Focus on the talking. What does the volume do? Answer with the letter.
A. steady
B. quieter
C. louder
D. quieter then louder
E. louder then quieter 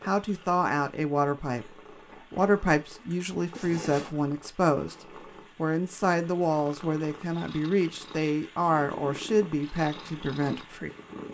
A.